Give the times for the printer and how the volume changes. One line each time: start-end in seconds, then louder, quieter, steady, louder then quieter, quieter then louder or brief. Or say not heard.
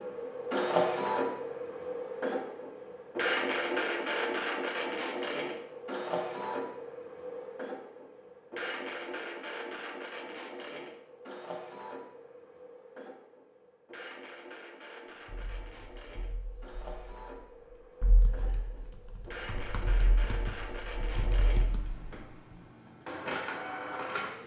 0.0-24.4 quieter then louder.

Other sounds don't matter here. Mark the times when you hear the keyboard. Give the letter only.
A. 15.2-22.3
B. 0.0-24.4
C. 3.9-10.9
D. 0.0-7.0
A.